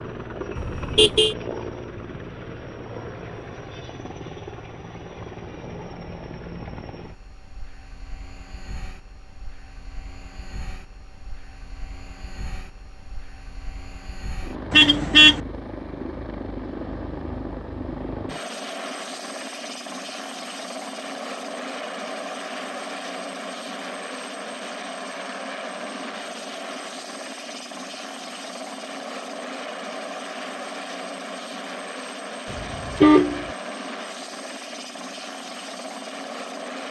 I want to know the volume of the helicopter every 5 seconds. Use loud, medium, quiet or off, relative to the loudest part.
loud, medium, medium, loud, loud, loud, loud, loud.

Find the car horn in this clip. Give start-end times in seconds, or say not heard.
0.6-1.4, 14.7-15.4, 32.5-33.5.